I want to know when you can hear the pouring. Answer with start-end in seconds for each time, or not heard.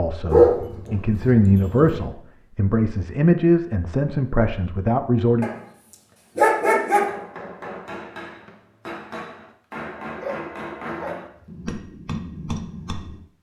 not heard.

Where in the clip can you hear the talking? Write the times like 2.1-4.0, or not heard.
0.0-5.5.